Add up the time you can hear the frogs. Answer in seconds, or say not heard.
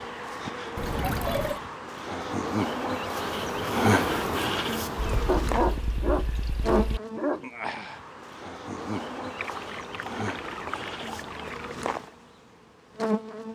not heard.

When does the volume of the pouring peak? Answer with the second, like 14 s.
1 s.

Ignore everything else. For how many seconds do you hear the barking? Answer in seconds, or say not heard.
2 s.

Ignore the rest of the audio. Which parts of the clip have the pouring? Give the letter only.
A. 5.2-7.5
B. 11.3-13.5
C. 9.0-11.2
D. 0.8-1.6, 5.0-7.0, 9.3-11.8
D.